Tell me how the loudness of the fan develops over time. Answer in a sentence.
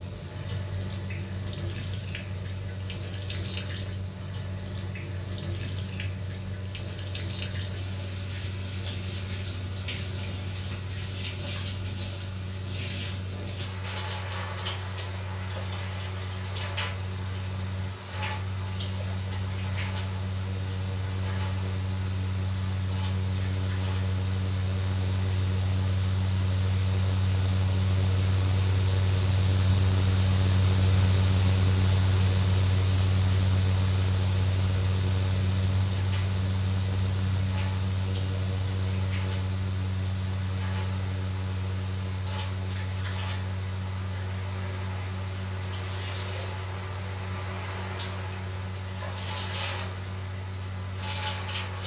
The volume of the fan goes up, then down.